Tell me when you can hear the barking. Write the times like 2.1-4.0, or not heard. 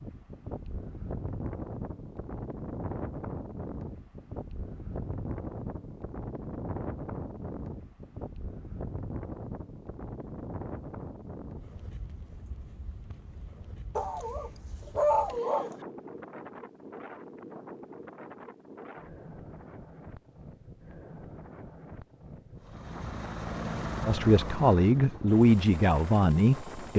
13.9-15.7.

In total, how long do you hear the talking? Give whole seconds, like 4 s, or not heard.
3 s.